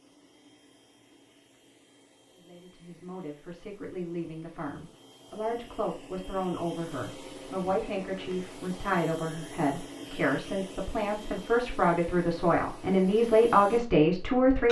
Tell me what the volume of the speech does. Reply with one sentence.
The loudness of the speech goes up.